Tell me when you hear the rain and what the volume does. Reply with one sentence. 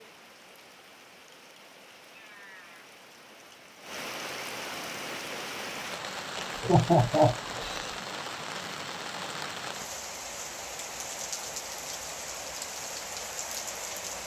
The rain can be heard from 0.0 to 14.2 s, getting louder.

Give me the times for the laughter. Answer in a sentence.
You can hear the laughter from 6.3 to 8.0 s.